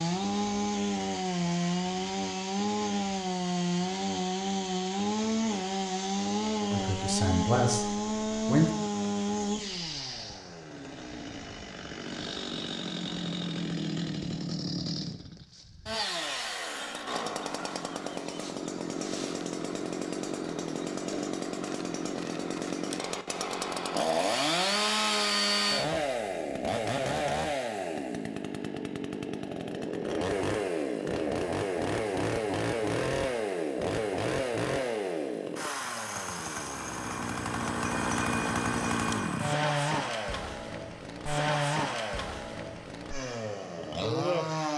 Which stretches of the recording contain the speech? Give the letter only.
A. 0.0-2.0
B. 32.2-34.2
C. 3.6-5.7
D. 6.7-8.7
D.